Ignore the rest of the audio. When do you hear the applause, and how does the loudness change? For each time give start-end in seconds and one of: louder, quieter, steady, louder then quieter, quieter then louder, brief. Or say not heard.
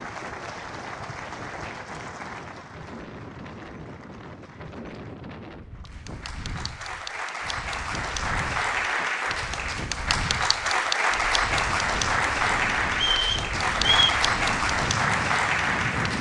0.0-16.1 quieter then louder.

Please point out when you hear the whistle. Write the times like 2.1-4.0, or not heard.
12.9-14.2.